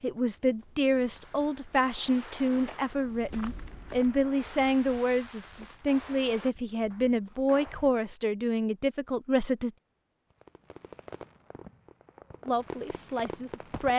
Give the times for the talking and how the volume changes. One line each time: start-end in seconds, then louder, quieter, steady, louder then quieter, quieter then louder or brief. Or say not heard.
0.0-9.7 steady
12.4-13.9 brief.